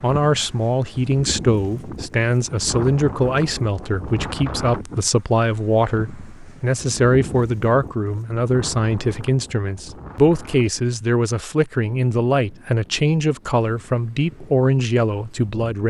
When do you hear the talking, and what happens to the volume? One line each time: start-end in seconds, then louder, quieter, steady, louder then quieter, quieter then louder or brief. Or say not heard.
0.0-15.8 steady.